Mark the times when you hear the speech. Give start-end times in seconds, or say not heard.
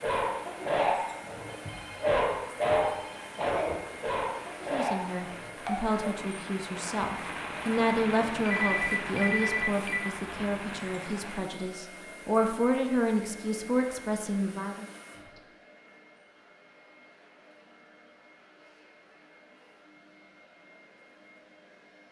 4.7-14.8.